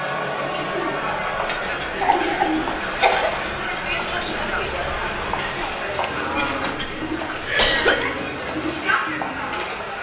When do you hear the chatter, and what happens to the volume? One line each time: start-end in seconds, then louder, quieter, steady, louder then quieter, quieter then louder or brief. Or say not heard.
0.0-9.9 steady.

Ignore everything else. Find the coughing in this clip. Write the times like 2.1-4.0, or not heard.
2.0-3.4, 6.3-8.1.